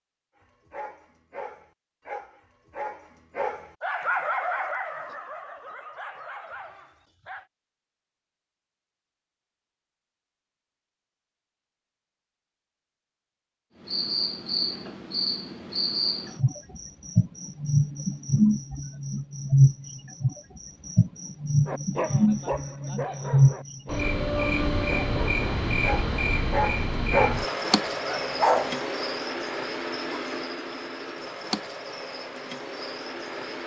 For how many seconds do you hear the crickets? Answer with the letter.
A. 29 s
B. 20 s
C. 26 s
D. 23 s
B.